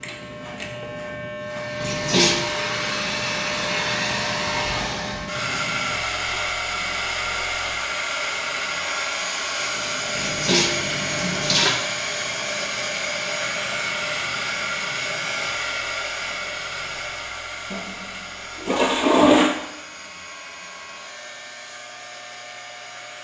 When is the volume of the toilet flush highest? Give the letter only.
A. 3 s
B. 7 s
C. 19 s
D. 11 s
C.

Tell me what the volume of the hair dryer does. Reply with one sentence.
The volume of the hair dryer goes down.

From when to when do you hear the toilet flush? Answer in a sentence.
You can hear the toilet flush from 1.8 to 2.5 s, from 10.2 to 11.8 s and from 17.7 to 19.6 s.